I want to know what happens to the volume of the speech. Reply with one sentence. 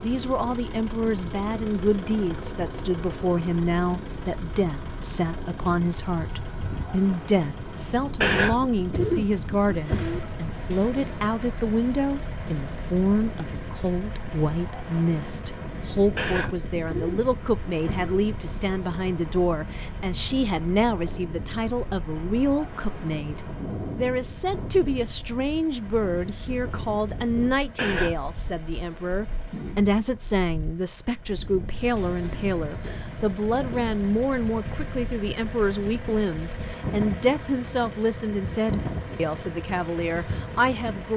The volume of the speech stays about the same.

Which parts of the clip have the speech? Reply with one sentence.
The speech can be heard from 0.0 to 41.1 s.